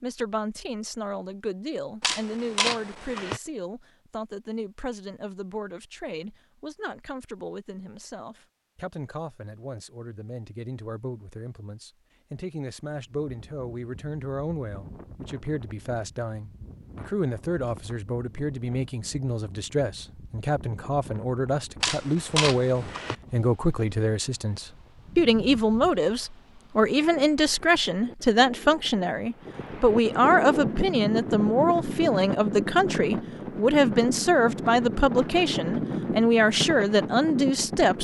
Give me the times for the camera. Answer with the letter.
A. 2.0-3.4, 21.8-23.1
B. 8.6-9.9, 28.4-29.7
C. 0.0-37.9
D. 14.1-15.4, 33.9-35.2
A.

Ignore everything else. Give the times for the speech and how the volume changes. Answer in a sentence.
The speech can be heard from 0.0 to 37.9 s, getting louder.